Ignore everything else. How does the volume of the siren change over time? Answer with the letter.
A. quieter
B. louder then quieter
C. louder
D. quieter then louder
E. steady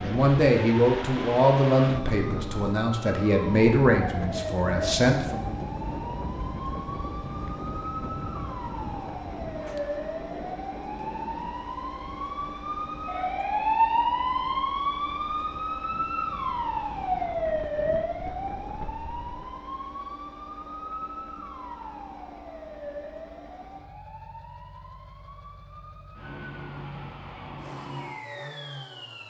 B.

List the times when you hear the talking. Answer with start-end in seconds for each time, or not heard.
0.0-5.5.